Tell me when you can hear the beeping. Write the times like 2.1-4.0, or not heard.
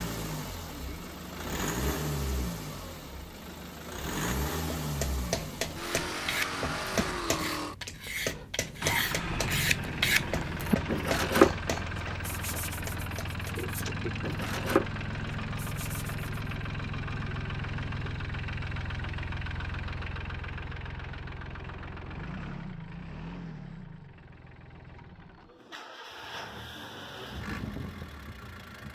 not heard.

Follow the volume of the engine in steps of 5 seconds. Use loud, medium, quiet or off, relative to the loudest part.
loud, loud, loud, loud, medium, medium.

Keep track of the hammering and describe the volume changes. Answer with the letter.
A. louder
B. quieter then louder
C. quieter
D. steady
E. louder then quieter
C.